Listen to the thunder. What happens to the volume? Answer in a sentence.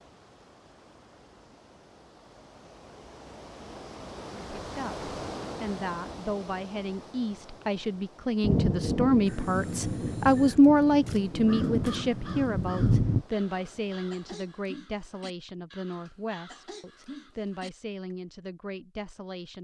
The loudness of the thunder goes down, then up.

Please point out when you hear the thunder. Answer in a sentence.
The thunder can be heard from 8.4 to 13.2 s.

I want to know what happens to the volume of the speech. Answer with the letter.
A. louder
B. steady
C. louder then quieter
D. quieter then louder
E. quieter
C.